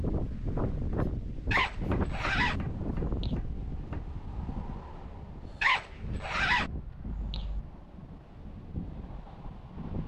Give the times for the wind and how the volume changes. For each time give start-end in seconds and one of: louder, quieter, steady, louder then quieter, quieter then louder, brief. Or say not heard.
0.0-10.0 quieter.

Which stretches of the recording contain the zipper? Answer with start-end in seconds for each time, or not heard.
1.5-3.4, 5.6-7.6.